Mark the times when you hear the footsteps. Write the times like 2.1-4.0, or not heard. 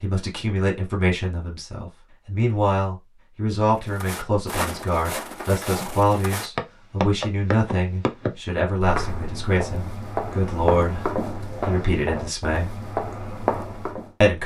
3.9-14.1.